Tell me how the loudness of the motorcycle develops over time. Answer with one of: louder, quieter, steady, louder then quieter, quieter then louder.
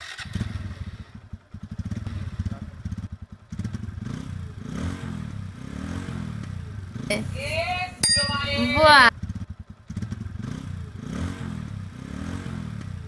steady.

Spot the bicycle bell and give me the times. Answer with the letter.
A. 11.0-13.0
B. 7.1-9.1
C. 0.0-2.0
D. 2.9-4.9
B.